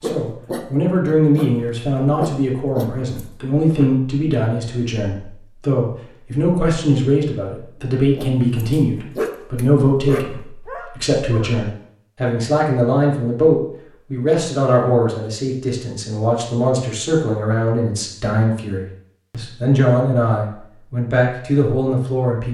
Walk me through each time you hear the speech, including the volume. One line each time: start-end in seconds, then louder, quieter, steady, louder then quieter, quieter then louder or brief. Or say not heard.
0.0-22.4 steady.